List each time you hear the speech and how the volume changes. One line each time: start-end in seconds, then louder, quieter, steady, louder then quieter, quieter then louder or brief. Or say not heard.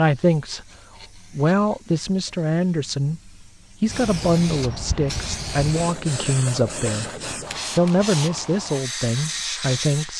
0.0-7.1 steady
7.8-10.1 brief.